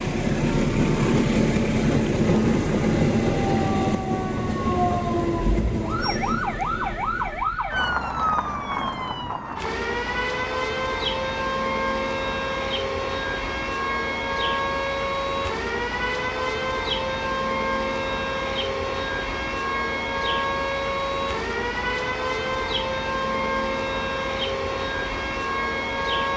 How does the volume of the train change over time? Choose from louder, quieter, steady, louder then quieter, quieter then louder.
quieter.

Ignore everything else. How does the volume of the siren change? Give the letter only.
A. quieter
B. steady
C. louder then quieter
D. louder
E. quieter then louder
B.